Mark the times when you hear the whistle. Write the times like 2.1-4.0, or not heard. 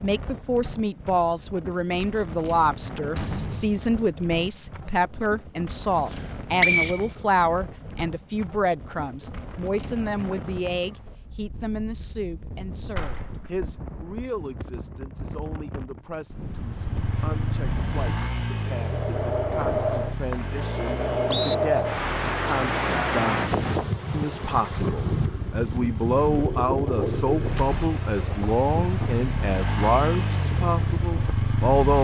6.6-7.0, 19.6-21.6.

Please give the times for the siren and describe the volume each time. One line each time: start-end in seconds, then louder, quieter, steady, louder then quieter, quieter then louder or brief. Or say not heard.
not heard.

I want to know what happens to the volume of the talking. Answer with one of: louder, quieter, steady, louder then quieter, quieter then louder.
quieter then louder.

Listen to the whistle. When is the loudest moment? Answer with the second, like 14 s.
7 s.